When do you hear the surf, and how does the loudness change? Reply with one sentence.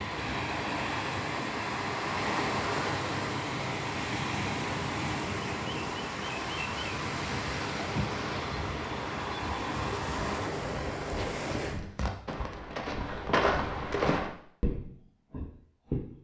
You can hear the surf from 0.0 to 11.8 s, at a steady volume.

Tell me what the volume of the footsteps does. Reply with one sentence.
The loudness of the footsteps goes up, then down.